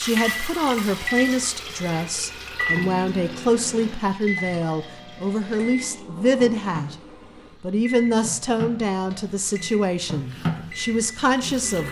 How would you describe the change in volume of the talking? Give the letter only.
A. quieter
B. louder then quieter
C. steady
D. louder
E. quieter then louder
C.